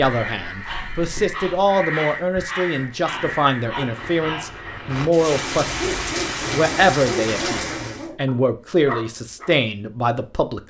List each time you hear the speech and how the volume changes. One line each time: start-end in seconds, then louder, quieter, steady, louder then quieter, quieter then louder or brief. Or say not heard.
0.0-10.6 steady.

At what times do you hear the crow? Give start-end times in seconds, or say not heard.
0.0-4.9.